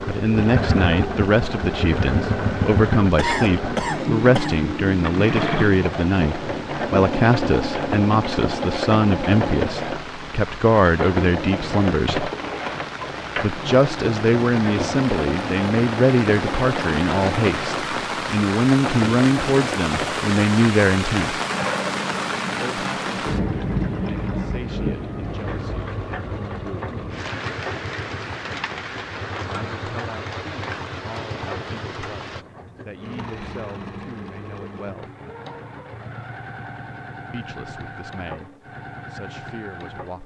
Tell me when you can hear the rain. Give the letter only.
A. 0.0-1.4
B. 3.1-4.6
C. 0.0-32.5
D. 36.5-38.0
C.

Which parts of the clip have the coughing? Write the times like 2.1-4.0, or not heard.
3.1-4.6.